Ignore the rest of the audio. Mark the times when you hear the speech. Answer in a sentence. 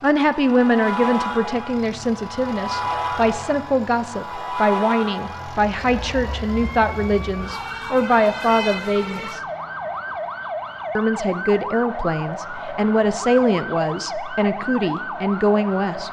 You can hear the speech from 0.0 to 9.4 s and from 10.9 to 16.0 s.